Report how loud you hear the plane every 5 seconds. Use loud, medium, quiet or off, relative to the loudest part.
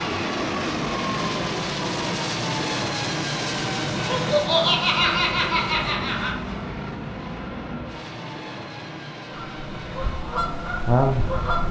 loud, medium, medium.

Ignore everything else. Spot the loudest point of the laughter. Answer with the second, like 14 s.
5 s.